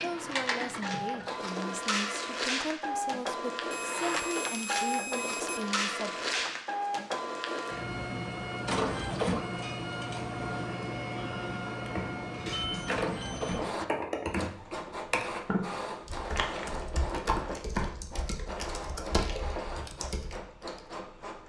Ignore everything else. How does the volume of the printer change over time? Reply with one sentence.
The volume of the printer goes down.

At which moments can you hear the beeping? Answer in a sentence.
You can hear the beeping from 3.7 to 5.7 s and from 12.4 to 13.7 s.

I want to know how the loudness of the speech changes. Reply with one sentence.
The loudness of the speech stays about the same.